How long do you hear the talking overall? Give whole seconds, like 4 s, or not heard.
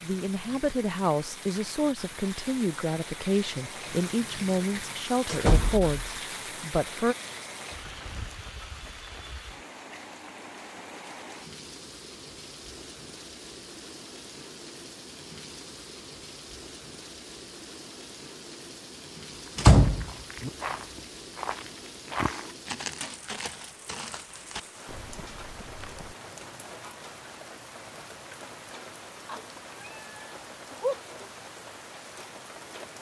7 s.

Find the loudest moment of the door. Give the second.
20 s.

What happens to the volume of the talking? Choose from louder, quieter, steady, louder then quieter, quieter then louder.
steady.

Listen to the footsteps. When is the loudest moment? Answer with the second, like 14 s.
22 s.